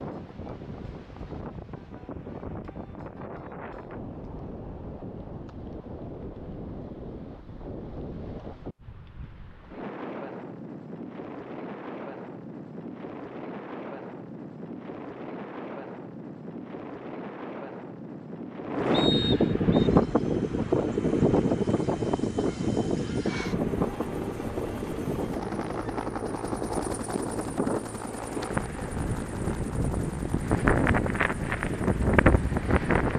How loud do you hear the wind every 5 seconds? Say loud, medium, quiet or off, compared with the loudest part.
quiet, quiet, quiet, loud, loud, medium, loud.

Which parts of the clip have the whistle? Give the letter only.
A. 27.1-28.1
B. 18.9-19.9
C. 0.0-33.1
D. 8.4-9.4
B.